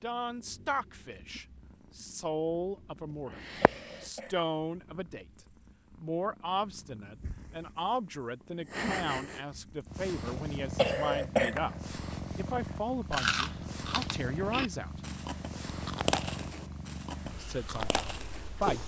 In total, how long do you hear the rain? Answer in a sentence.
The rain can't be heard in this clip.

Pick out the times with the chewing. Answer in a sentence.
You can hear the chewing from 12.4 to 18.8 s.